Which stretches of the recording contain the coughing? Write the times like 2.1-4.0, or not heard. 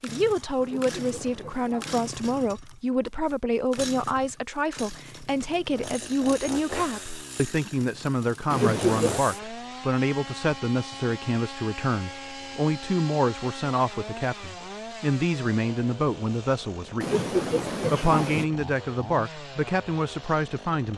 0.6-2.0, 8.5-9.2, 17.0-18.4.